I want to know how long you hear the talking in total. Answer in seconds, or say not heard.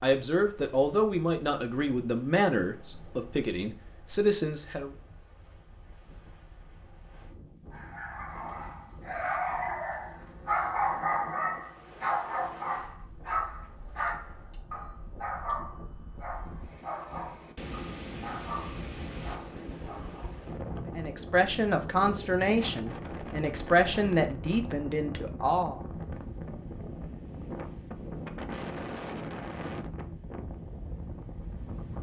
10 s.